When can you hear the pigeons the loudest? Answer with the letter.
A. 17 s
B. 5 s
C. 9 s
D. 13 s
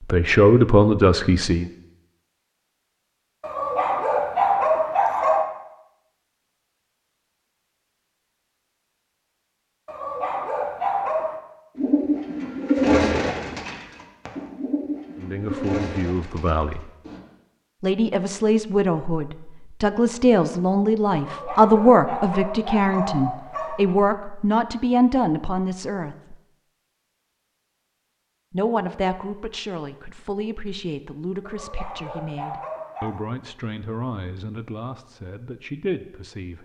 D.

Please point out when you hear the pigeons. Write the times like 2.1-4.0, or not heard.
11.8-17.2.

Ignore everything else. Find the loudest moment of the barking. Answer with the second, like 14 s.
5 s.